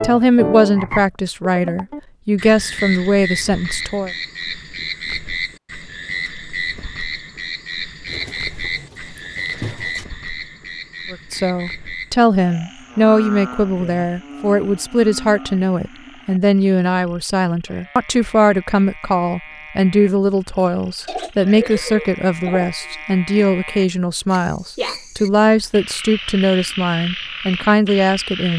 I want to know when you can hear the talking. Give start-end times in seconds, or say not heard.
0.0-4.1, 11.1-28.5.